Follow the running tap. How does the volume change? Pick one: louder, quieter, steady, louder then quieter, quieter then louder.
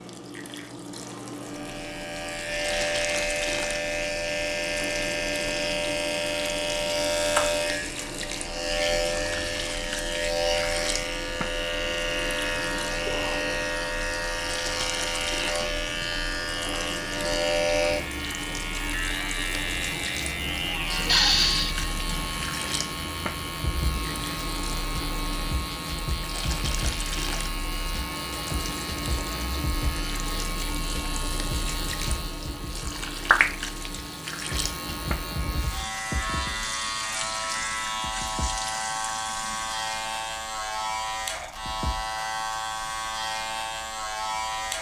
steady.